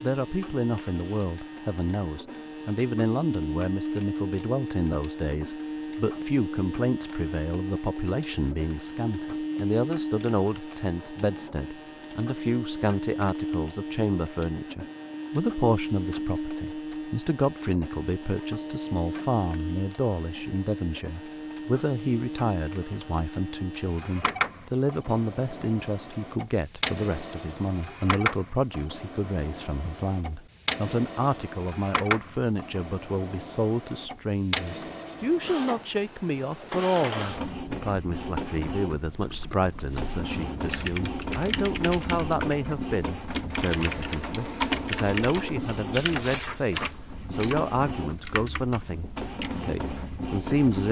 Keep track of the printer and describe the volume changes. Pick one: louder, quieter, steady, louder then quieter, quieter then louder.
steady.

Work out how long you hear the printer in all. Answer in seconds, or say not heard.
51 s.